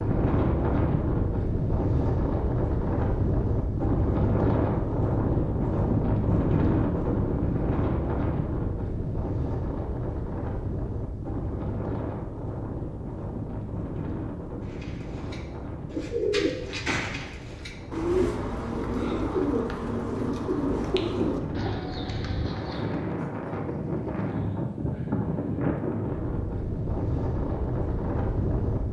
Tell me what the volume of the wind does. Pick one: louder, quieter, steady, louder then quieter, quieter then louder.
quieter then louder.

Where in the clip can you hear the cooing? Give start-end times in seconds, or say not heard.
14.7-23.1.